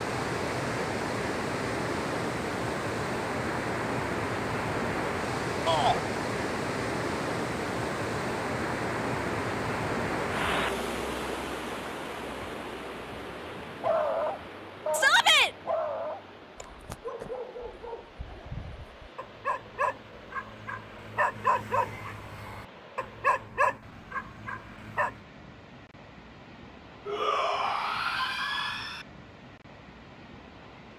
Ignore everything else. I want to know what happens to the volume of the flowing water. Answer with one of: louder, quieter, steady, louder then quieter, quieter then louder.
quieter.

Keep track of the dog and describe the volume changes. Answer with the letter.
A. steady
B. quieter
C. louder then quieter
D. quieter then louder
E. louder
D.